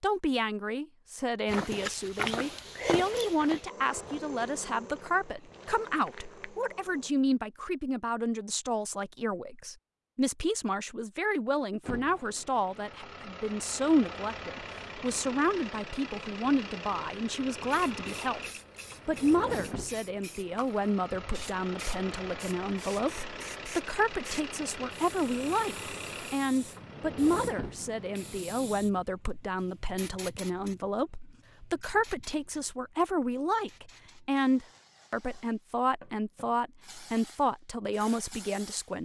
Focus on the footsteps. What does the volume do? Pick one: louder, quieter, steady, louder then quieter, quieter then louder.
quieter.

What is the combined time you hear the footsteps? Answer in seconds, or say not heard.
5 s.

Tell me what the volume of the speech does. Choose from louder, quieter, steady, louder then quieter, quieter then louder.
steady.